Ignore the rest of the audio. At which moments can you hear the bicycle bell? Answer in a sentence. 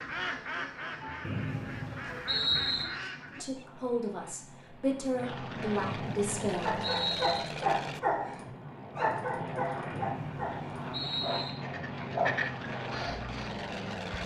The bicycle bell can't be heard in this clip.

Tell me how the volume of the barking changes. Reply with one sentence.
The volume of the barking goes down, then up.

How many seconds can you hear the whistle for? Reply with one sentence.
The whistle can be heard for 5 seconds in total.